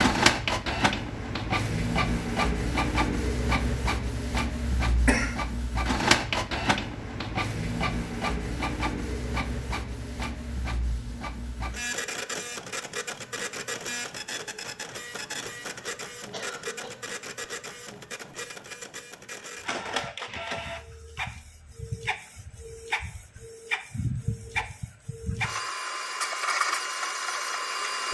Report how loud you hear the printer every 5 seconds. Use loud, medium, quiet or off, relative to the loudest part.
loud, loud, medium, medium, medium, loud.